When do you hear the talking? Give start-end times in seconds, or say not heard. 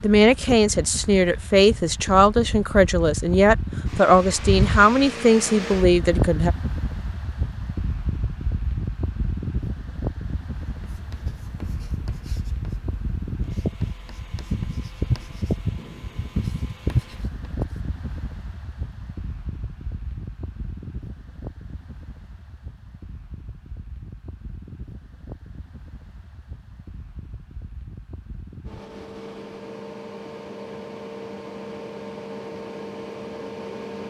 0.0-6.5.